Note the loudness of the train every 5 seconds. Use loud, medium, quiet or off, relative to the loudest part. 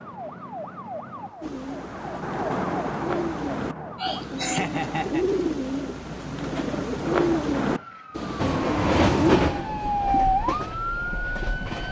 off, loud, medium.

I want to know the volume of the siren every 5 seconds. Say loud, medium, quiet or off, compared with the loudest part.
medium, medium, loud.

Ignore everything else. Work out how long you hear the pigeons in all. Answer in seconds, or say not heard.
8 s.